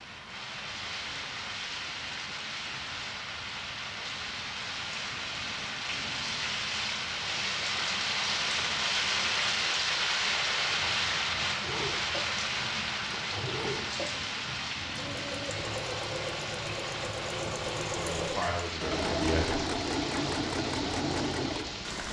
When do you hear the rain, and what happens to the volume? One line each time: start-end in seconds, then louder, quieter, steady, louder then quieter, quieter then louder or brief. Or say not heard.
0.0-22.0 louder then quieter.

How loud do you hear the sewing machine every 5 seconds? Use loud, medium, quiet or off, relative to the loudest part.
off, off, medium, loud, loud.